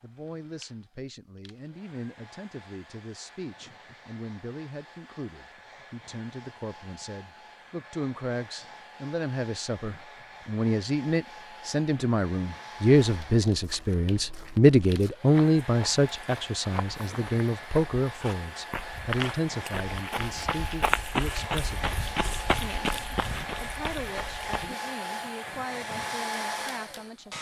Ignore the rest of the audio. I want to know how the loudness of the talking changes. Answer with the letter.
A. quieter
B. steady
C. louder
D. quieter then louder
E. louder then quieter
E.